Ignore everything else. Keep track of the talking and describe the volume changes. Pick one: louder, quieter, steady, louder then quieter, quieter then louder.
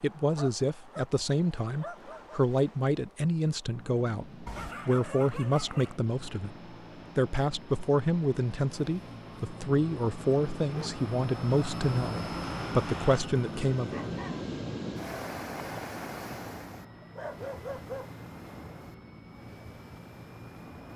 steady.